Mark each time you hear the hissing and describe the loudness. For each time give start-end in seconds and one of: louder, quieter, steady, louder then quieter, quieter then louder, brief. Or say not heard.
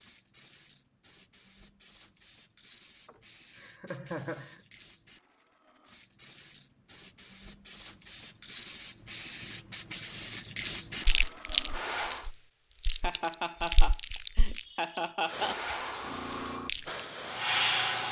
0.0-12.2 louder
15.2-18.0 brief.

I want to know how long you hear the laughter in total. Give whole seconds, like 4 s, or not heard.
4 s.